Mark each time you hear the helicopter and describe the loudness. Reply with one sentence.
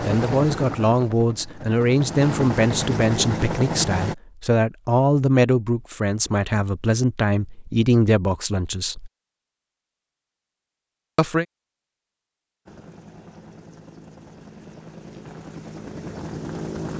The helicopter can be heard from 0.0 to 4.2 s, getting quieter then louder; and from 12.7 to 16.9 s, getting louder.